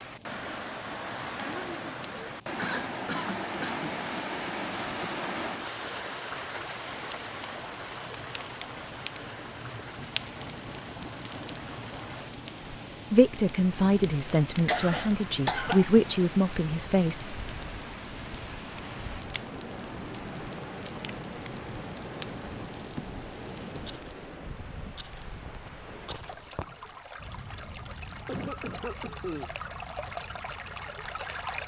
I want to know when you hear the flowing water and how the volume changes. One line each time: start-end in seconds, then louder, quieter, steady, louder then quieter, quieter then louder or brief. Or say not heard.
0.0-31.6 quieter.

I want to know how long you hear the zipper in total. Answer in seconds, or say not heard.
2 s.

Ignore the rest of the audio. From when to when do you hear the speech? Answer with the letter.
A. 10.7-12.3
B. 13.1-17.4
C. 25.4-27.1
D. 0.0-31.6
B.